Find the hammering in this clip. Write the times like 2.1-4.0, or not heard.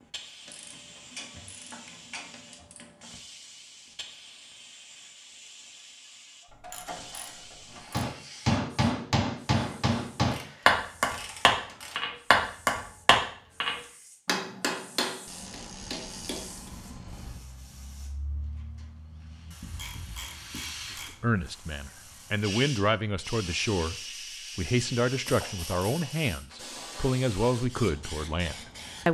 7.9-16.7.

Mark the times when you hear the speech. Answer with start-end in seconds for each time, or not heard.
20.9-23.9, 24.6-29.1.